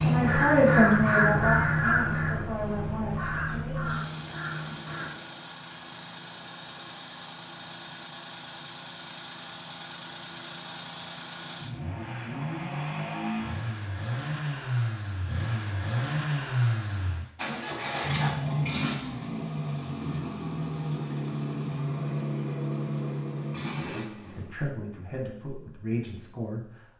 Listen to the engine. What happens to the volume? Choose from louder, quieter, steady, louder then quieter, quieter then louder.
louder.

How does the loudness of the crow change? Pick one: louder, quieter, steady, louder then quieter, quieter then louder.
quieter.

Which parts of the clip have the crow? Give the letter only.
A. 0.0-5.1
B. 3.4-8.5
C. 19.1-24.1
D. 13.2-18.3
A.